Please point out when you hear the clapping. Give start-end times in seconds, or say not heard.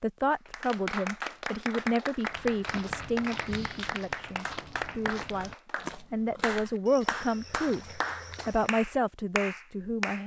0.5-10.2.